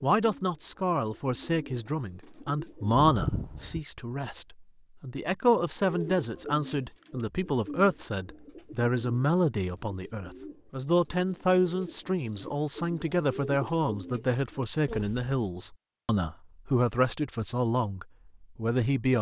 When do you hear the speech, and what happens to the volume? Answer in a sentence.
The speech can be heard from 0.0 to 19.1 s, at a steady volume.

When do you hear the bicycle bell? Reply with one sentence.
The bicycle bell can be heard from 3.0 to 3.9 s.